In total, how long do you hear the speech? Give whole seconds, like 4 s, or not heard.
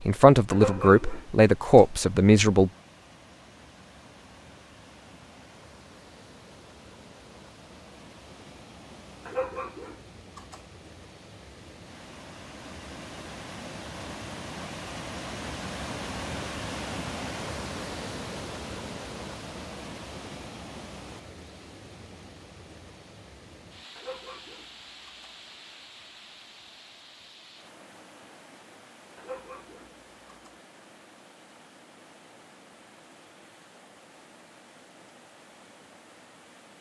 3 s.